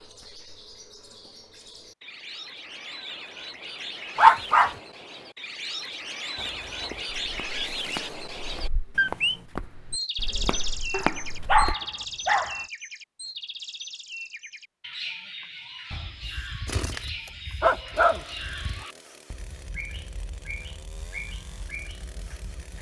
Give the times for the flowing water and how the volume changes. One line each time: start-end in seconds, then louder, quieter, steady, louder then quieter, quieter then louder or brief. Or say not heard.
not heard.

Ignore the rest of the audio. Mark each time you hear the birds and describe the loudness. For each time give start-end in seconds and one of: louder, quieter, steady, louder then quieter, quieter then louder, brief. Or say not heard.
0.0-22.7 louder then quieter.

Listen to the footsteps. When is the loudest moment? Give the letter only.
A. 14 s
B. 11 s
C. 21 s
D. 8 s
B.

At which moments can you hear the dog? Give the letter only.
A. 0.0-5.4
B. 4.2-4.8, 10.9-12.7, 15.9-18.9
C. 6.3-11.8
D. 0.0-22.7
B.